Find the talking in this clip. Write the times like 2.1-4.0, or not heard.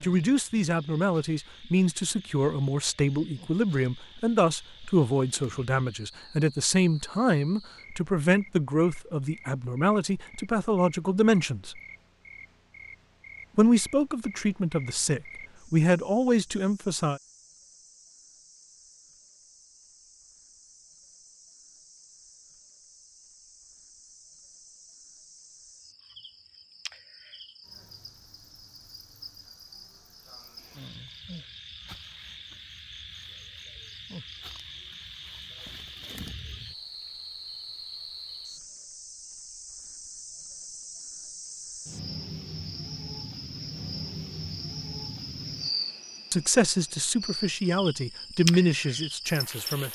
0.0-11.8, 13.6-17.2, 46.3-49.8.